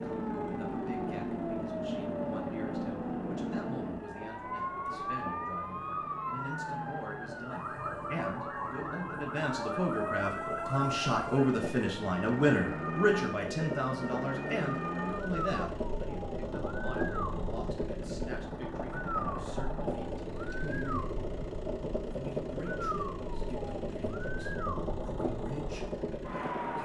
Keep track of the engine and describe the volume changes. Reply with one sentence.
The loudness of the engine goes up.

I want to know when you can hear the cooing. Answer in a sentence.
The cooing can't be heard in this clip.